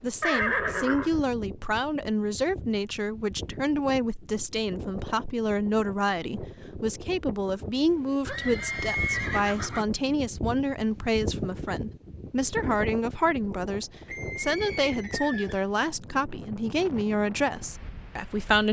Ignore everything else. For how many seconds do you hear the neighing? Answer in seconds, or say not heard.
4 s.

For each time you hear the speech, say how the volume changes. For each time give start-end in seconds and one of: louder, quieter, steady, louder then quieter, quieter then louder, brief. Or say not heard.
0.0-18.6 steady.